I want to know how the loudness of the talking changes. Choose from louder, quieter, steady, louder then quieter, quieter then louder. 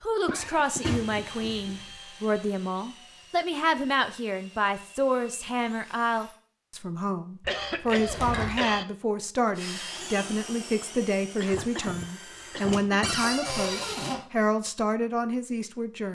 steady.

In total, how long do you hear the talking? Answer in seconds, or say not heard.
16 s.